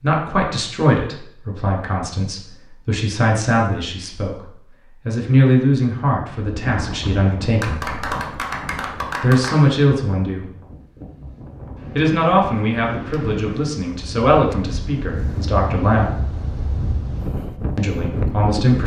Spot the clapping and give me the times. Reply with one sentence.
The clapping can be heard from 7.6 to 9.6 s.